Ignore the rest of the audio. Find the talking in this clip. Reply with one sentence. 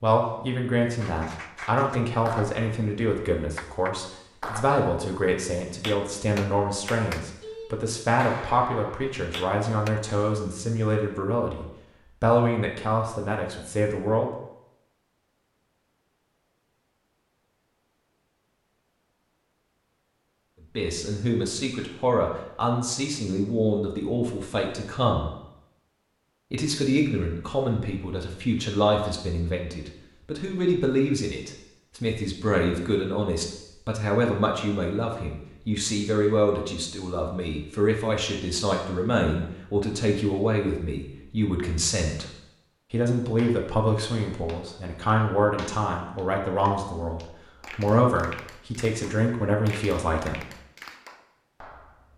You can hear the talking from 0.0 to 14.3 s, from 20.8 to 25.3 s, from 26.5 to 42.3 s and from 42.9 to 50.5 s.